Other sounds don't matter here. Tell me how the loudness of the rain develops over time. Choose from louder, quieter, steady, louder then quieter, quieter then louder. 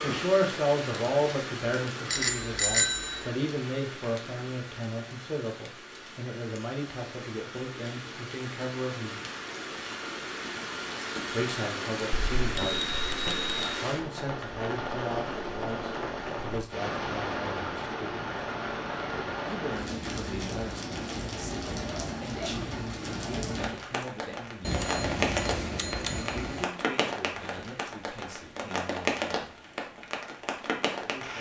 louder.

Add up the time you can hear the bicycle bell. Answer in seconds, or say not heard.
5 s.